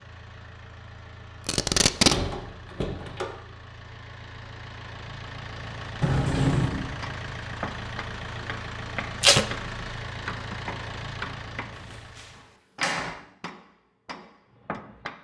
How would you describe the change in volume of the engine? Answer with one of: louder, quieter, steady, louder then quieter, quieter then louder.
louder.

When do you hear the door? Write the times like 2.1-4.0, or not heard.
1.9-3.4, 6.0-6.9, 11.9-13.2.